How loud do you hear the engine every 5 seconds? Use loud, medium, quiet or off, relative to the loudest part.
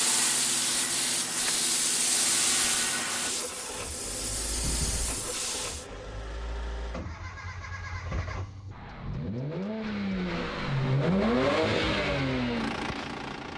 medium, medium, loud.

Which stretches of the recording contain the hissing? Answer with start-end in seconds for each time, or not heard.
0.0-5.8.